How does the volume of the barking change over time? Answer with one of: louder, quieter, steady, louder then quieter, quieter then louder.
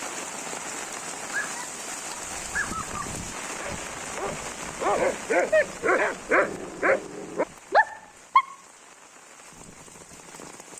louder.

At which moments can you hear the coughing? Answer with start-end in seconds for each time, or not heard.
not heard.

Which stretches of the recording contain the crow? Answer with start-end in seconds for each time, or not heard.
not heard.